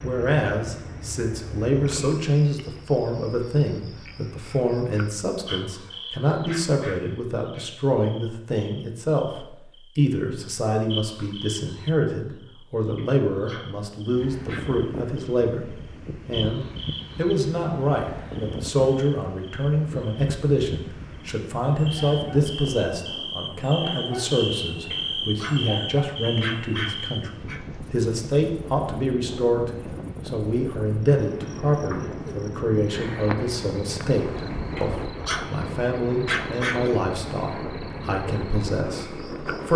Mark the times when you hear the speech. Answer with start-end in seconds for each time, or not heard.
0.0-39.7.